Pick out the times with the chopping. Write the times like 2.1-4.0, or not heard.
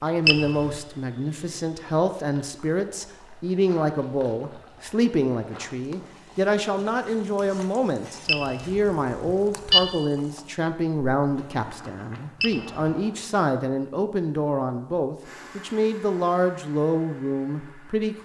not heard.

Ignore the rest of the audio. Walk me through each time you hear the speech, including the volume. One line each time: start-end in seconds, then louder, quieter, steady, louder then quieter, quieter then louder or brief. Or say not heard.
0.0-18.2 steady.